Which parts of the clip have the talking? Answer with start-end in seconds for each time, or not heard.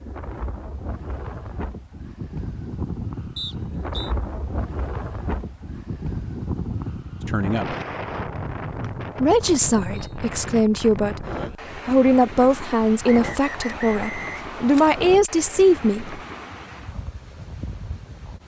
7.2-7.8, 9.2-16.2.